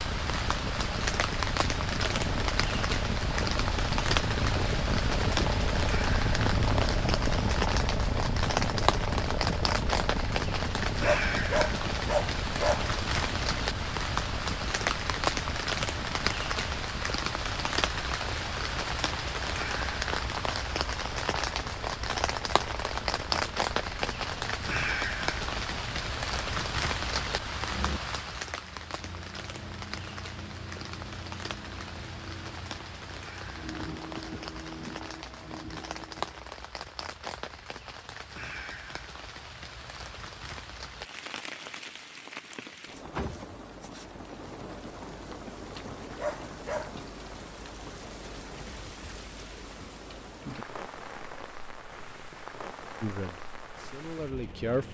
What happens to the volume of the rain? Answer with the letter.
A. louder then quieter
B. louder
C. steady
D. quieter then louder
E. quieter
E.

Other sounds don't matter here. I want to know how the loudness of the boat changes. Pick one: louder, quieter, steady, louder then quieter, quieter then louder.
quieter.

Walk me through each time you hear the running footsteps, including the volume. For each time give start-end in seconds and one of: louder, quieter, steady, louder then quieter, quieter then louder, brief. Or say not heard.
not heard.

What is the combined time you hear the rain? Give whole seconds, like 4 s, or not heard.
55 s.